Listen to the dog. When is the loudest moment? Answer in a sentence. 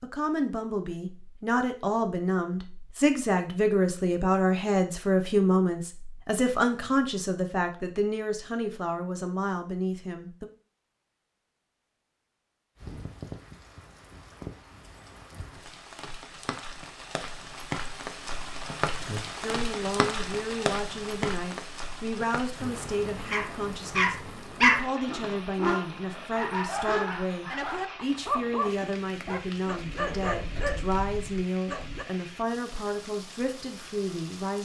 The volume of the dog peaks at 25 seconds.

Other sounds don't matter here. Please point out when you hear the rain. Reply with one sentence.
The rain can be heard from 12.8 to 34.6 s.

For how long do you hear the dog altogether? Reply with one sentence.
You can hear the dog for 9 seconds altogether.